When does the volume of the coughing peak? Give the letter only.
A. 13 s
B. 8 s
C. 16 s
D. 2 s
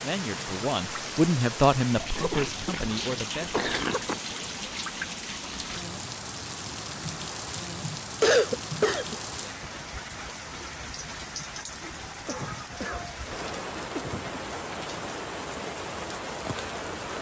B.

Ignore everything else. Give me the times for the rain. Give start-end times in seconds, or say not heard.
0.0-17.1.